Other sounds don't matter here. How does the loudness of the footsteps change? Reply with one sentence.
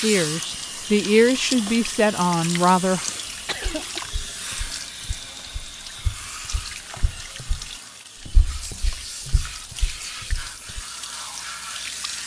The loudness of the footsteps goes up.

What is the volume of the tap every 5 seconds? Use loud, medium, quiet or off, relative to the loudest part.
loud, medium, loud.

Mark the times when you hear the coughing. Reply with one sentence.
The coughing can be heard from 2.9 to 4.0 s.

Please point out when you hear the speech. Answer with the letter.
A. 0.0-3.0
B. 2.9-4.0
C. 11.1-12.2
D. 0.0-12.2
A.